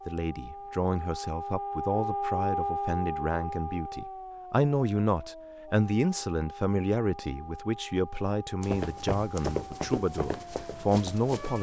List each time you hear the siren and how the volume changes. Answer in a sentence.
You can hear the siren from 0.0 to 11.5 s, getting quieter.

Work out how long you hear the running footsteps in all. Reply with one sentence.
You can hear the running footsteps for 3 seconds altogether.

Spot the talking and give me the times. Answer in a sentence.
You can hear the talking from 0.1 to 11.5 s.